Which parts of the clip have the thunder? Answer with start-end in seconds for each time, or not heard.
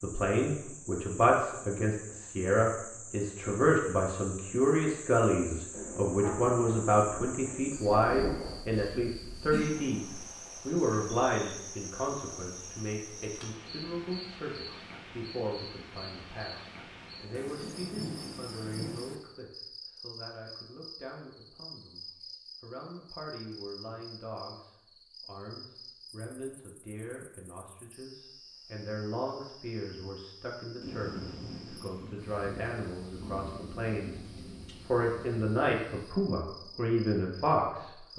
5.7-8.6, 17.3-19.2, 30.8-35.5.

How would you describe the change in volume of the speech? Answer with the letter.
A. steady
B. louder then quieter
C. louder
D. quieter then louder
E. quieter
D.